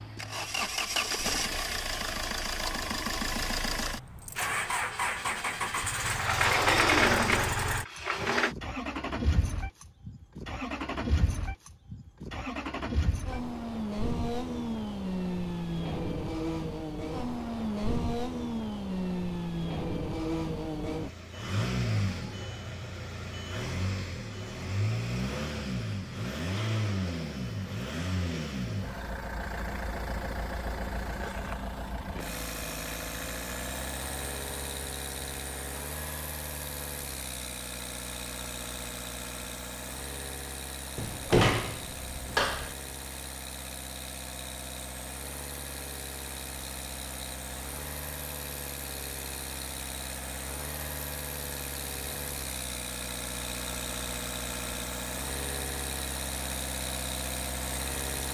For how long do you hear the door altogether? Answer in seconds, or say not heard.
4 s.